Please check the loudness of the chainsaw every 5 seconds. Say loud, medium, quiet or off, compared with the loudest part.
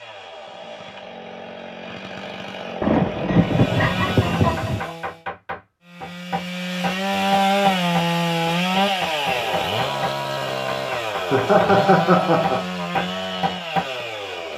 medium, loud, medium.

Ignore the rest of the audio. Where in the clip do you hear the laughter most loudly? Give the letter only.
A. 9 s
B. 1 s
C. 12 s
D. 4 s
C.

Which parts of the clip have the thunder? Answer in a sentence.
You can hear the thunder from 2.8 to 4.8 s.